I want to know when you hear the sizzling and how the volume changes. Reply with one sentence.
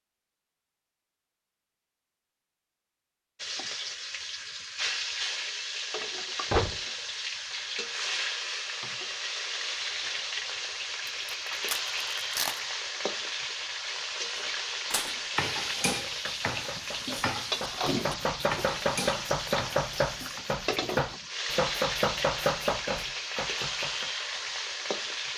The sizzling can be heard from 3.4 to 25.3 s, at a steady volume.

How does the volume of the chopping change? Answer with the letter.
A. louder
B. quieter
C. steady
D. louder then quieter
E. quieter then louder
A.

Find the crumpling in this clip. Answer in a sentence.
The crumpling can be heard from 11.1 to 12.7 s.